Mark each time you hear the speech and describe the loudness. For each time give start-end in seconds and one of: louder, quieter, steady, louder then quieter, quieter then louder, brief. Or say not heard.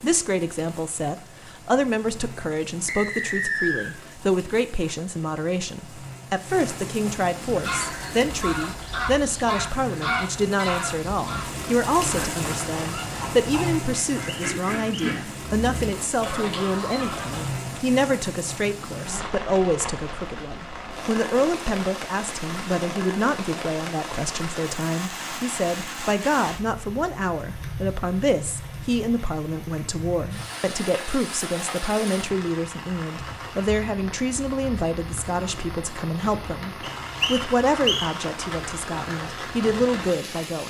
0.0-40.6 steady.